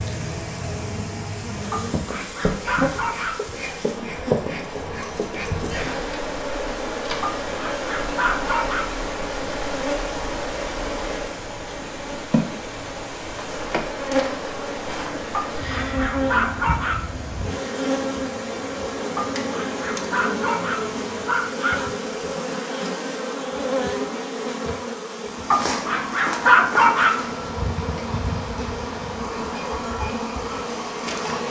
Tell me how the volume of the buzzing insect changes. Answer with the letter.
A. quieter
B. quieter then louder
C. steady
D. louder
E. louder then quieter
C.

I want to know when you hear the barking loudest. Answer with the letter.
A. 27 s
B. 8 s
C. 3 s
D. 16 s
A.